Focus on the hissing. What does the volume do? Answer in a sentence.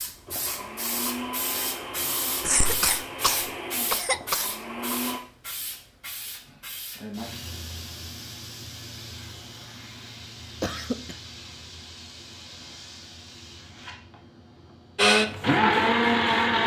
The volume of the hissing goes down.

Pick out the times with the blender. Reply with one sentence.
The blender can be heard from 0.0 to 5.2 s and from 14.9 to 16.6 s.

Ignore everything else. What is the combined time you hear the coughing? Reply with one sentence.
You can hear the coughing for 3 seconds altogether.